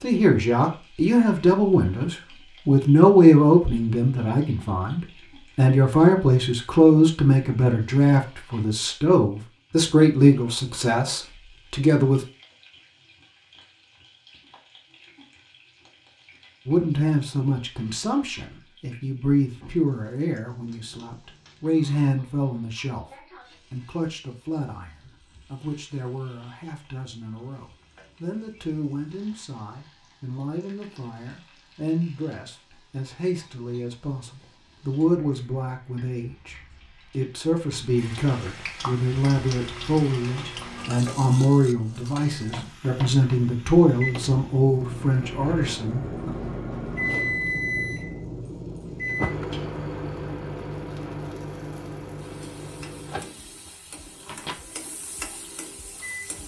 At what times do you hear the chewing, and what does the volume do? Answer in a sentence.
You can't hear the chewing here.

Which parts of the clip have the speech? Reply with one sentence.
You can hear the speech from 0.0 to 12.2 s and from 16.6 to 46.3 s.